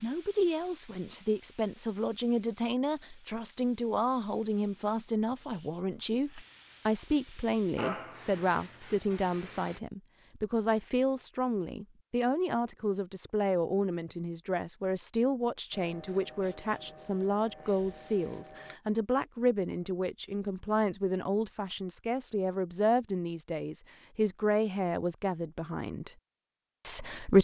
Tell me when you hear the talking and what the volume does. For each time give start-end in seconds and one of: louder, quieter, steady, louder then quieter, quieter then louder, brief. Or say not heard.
0.0-26.1 steady
26.8-27.3 brief.